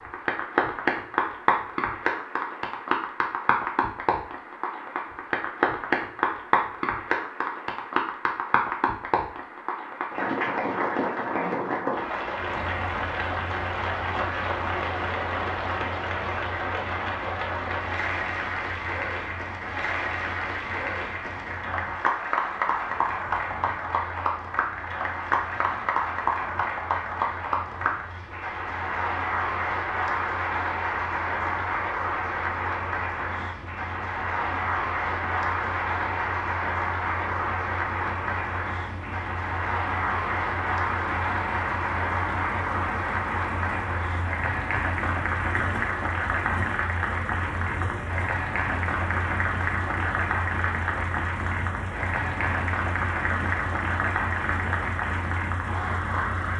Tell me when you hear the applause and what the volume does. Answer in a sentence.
You can hear the applause from 0.0 to 56.5 s, at a steady volume.